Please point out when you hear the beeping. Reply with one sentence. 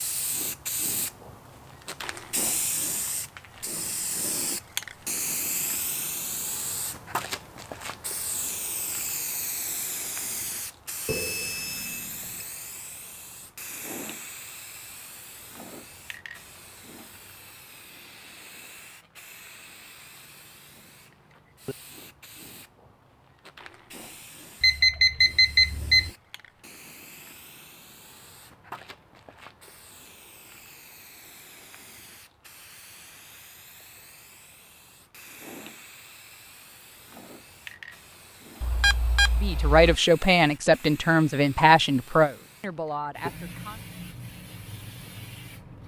You can hear the beeping from 11.1 to 12.4 s, from 24.6 to 26.1 s and from 38.6 to 40.0 s.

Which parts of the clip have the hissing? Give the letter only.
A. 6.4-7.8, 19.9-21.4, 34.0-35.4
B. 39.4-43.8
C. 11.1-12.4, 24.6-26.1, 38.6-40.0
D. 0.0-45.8
D.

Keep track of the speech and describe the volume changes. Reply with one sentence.
The volume of the speech goes down.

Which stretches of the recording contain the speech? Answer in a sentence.
You can hear the speech from 39.4 to 43.8 s.